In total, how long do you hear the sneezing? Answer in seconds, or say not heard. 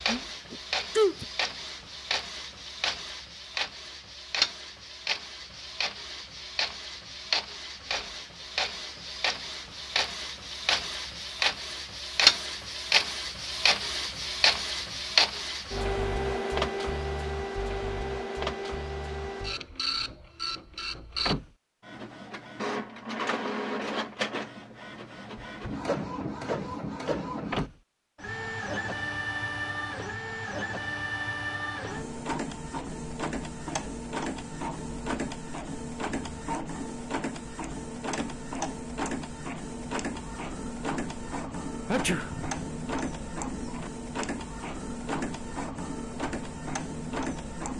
2 s.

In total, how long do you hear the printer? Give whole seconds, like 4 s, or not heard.
48 s.